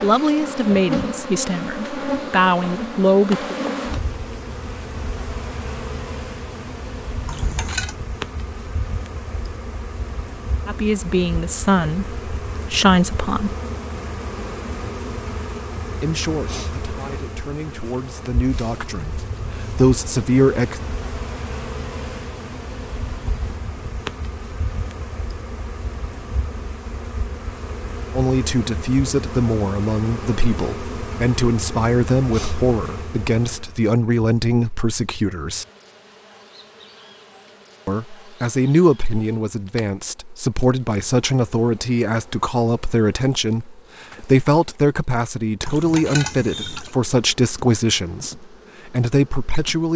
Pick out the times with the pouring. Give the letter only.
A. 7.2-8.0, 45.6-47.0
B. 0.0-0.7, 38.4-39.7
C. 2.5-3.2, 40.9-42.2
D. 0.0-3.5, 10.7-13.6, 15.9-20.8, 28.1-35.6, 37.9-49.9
A.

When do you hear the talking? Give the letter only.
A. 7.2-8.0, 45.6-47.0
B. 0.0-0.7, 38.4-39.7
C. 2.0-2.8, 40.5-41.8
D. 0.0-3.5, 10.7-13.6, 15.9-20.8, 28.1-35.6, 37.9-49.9
D.